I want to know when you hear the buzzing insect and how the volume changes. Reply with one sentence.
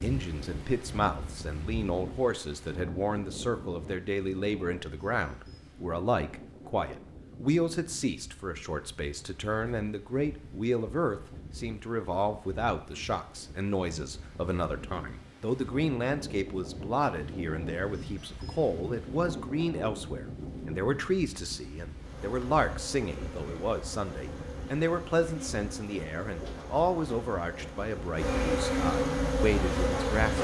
The buzzing insect can be heard from 21.9 to 30.3 s, getting louder.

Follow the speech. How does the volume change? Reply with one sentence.
The volume of the speech stays about the same.